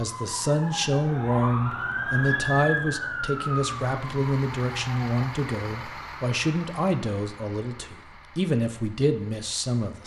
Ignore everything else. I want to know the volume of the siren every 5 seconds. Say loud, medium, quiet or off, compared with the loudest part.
loud, off.